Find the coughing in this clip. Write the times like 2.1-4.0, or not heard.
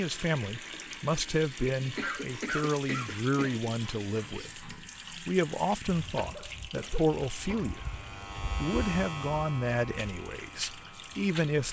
1.9-3.6, 6.2-7.8.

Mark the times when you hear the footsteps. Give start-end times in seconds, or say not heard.
not heard.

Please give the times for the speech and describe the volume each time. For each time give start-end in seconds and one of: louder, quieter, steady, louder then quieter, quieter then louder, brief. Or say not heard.
0.0-11.6 steady.